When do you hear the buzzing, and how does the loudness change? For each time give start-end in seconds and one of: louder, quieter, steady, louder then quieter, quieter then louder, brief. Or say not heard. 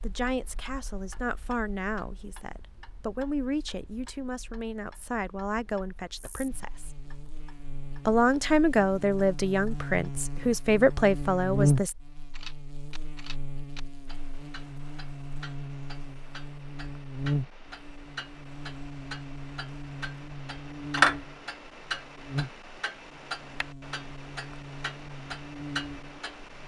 6.1-26.6 louder then quieter.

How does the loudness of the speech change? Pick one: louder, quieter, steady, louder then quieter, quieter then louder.
louder.